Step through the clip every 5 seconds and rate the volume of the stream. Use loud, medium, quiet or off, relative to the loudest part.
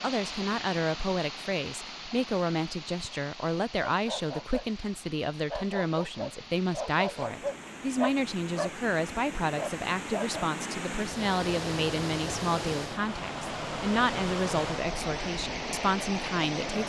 medium, medium, loud, loud.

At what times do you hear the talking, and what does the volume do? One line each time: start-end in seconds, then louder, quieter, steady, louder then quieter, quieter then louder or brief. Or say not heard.
0.0-16.8 steady.